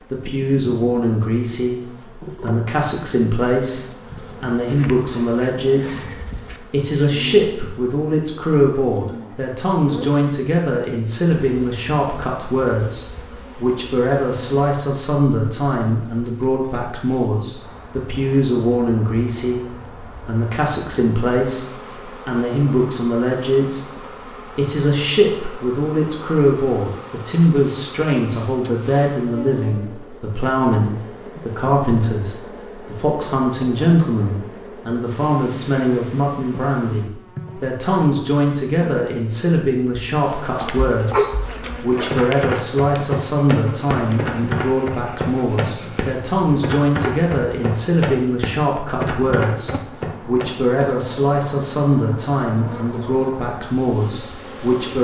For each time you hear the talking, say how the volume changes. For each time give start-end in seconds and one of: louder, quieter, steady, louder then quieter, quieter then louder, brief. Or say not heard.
0.1-54.9 steady.